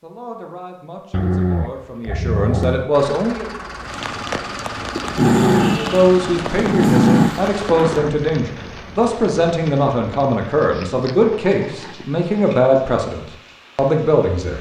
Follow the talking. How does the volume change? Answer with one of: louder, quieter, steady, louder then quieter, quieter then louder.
louder.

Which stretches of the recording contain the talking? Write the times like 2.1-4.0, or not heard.
0.0-3.5, 5.8-14.5.